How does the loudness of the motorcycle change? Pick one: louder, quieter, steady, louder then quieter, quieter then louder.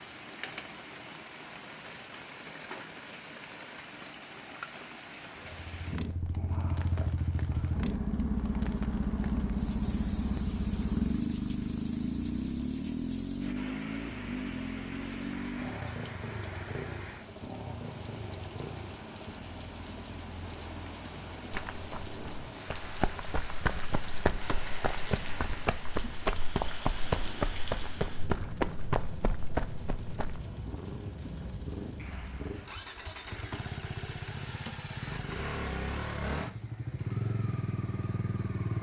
quieter then louder.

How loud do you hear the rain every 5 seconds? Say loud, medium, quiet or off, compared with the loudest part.
loud, loud, loud, loud, loud, loud, loud, off.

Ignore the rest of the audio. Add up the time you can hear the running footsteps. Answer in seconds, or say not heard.
9 s.